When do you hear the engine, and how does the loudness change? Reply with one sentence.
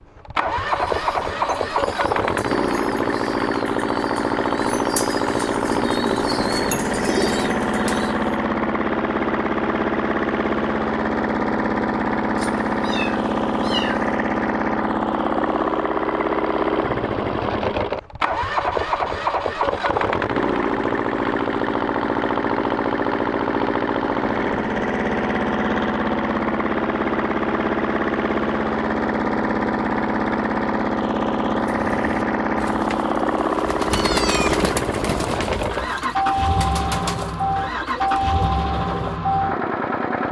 The engine can be heard from 0.0 to 40.2 s, at a steady volume.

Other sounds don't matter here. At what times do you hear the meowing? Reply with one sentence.
The meowing can be heard from 12.3 to 14.2 s and from 33.9 to 34.6 s.